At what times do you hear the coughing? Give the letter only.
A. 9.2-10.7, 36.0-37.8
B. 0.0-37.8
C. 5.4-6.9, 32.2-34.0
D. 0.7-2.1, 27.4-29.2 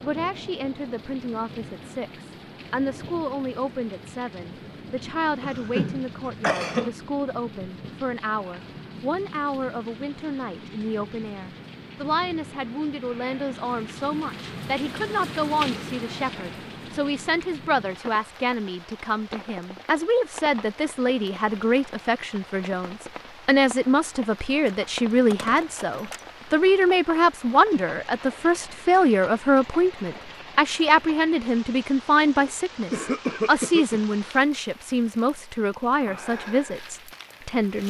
C.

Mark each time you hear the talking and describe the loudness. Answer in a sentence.
The talking can be heard from 0.0 to 37.8 s, getting louder.